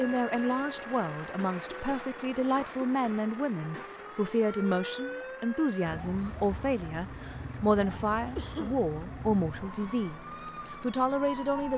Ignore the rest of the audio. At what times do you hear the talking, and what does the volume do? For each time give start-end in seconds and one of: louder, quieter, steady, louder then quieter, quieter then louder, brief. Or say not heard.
0.0-11.7 steady.